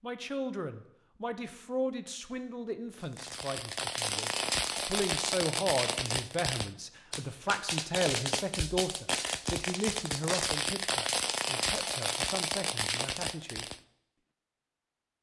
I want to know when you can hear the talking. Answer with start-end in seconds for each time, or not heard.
0.0-13.7.